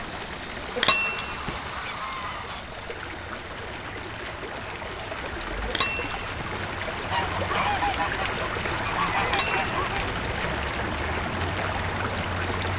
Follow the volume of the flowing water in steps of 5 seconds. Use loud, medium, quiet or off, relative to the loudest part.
medium, loud, loud.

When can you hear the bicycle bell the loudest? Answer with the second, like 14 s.
1 s.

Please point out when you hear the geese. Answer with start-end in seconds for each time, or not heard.
0.8-2.6, 7.1-10.0.